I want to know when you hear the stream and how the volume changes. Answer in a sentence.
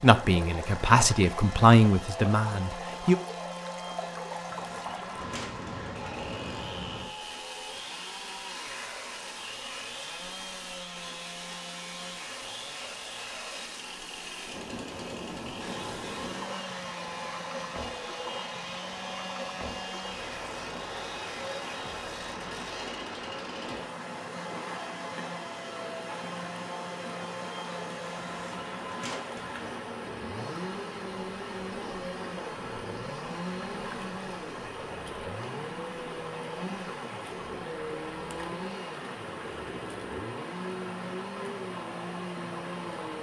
You can hear the stream from 0.0 to 43.1 s, at a steady volume.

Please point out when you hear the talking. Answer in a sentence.
You can hear the talking from 0.0 to 3.1 s.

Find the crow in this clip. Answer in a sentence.
The crow can't be heard in this clip.